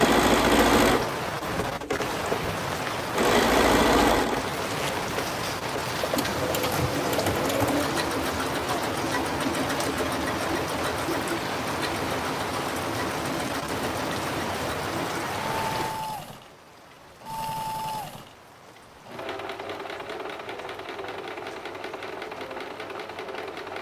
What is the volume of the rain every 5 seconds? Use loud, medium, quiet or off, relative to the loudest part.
loud, loud, loud, medium, quiet.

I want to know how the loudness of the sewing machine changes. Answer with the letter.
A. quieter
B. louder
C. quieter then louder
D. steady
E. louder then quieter
A.